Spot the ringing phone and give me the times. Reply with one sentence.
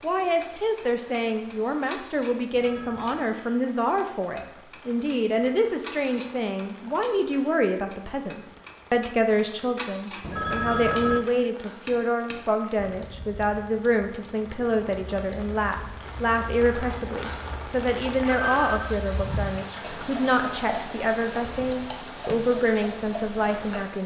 You can hear the ringing phone from 2.5 to 3.3 s, from 10.2 to 11.2 s and from 18.2 to 19.0 s.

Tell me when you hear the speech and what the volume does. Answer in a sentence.
The speech can be heard from 0.0 to 24.0 s, at a steady volume.